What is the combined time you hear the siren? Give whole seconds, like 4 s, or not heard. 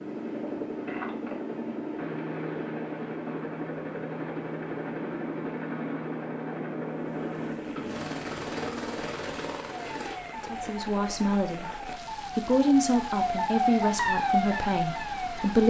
6 s.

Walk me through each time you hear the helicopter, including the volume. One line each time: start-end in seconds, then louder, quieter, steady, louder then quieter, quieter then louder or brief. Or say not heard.
0.0-10.2 steady.